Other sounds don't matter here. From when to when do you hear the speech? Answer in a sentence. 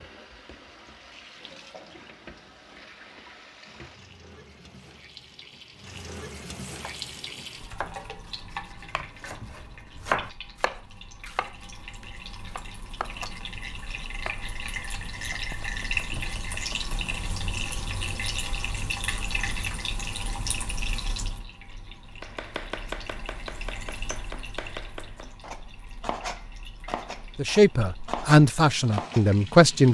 You can hear the speech from 27.4 to 29.9 s.